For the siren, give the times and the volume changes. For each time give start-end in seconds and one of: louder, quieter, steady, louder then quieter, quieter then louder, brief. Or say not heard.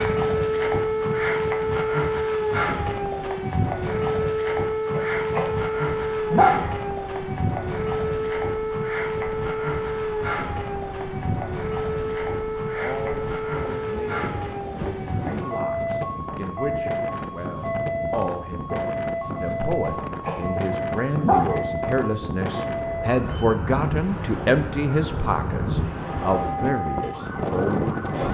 0.0-28.2 quieter.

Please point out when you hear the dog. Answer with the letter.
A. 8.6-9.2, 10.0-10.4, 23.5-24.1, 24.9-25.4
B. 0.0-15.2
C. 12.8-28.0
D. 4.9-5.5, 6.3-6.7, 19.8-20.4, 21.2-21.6
D.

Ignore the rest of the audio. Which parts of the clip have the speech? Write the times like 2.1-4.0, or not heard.
12.8-28.0.